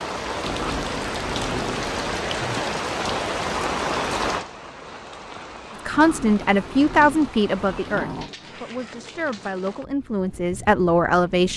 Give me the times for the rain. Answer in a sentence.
You can hear the rain from 0.0 to 11.5 s.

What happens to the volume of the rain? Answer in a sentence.
The volume of the rain goes down.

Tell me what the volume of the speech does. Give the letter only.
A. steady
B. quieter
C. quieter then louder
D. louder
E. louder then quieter
C.